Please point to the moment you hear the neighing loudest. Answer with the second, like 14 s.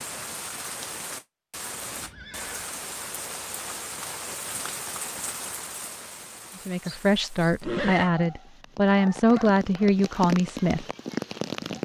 8 s.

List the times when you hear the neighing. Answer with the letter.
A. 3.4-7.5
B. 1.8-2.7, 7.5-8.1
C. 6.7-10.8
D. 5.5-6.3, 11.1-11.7
B.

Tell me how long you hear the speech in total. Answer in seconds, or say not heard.
4 s.